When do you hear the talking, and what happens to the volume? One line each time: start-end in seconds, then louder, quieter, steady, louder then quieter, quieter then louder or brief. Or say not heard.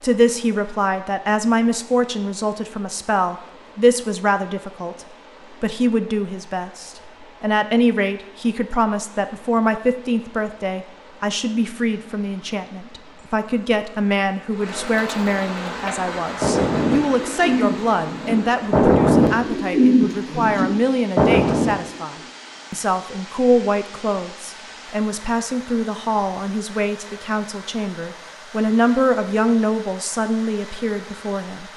0.0-31.7 steady.